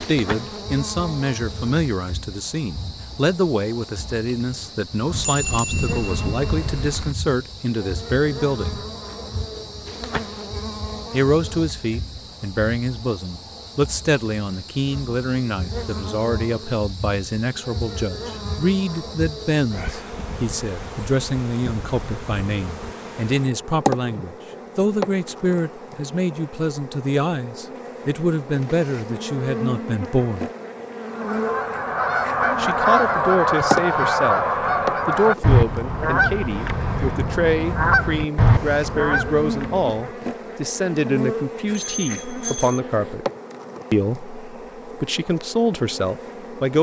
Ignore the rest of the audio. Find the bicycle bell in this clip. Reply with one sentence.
You can hear the bicycle bell from 5.1 to 7.2 s and from 41.6 to 42.8 s.